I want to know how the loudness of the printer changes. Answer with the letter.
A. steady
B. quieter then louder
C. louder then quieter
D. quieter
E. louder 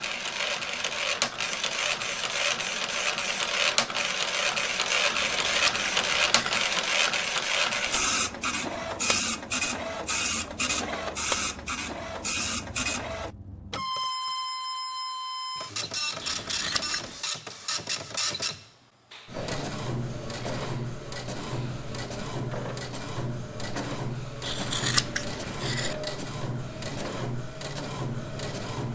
D.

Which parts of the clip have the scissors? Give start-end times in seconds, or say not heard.
5.1-6.7, 16.2-17.1, 24.4-25.9.